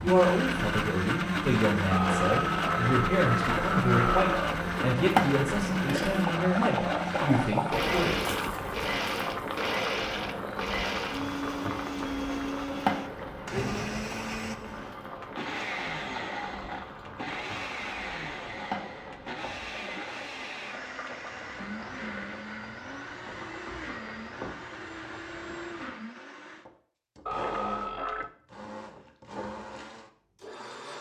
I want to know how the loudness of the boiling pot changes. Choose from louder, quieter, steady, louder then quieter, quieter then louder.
quieter.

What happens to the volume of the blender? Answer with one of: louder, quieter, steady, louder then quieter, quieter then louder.
quieter.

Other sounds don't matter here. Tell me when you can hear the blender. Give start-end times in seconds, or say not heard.
0.0-30.9.